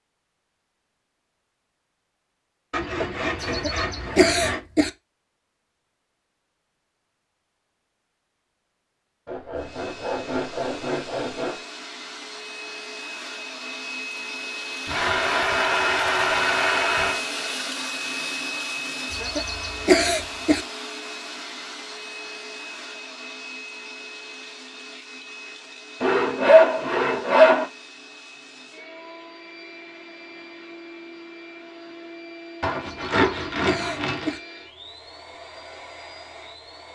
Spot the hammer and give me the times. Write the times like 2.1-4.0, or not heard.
not heard.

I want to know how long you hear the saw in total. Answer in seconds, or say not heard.
10 s.